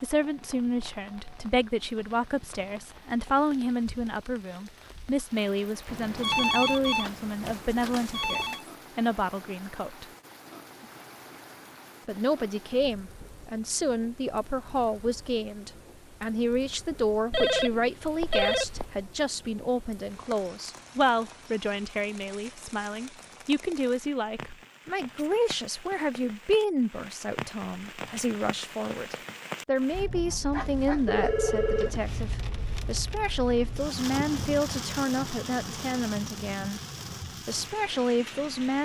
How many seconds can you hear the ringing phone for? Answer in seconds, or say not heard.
6 s.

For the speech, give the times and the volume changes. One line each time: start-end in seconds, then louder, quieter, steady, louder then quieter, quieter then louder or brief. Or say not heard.
0.0-10.1 steady
12.1-36.8 steady
37.5-38.8 brief.